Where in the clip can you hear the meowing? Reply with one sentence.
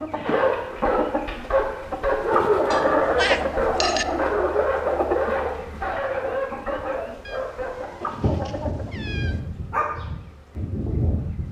The meowing can be heard from 2.7 to 4.0 s and from 7.2 to 9.4 s.